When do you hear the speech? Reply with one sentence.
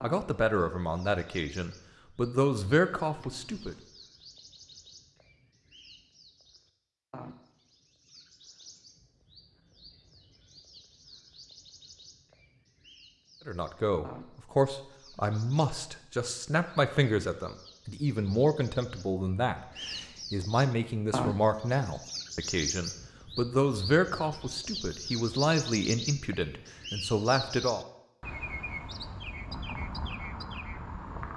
You can hear the speech from 0.0 to 3.8 s and from 13.4 to 27.9 s.